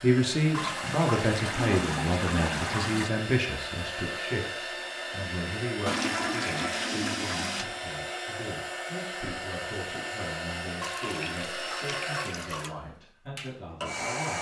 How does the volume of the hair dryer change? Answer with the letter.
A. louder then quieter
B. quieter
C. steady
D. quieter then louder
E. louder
C.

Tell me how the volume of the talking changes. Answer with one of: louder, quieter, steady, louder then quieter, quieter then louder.
quieter.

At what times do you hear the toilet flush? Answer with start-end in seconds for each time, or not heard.
0.5-3.1, 5.8-7.7, 10.8-12.8.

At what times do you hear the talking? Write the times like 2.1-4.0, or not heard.
0.0-14.3.